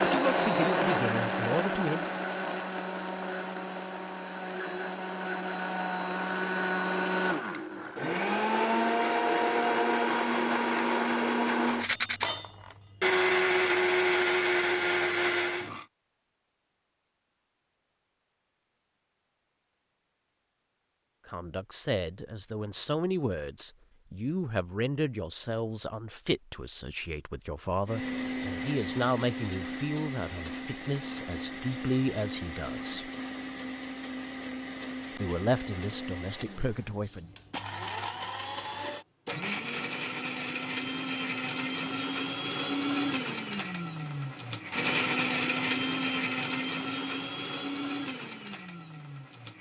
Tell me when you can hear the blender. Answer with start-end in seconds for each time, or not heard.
0.0-15.8, 27.8-49.5.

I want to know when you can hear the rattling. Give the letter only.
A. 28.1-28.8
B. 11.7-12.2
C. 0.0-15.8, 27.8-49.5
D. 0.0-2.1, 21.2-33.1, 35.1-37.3
B.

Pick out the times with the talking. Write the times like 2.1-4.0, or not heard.
0.0-2.1, 21.2-33.1, 35.1-37.3.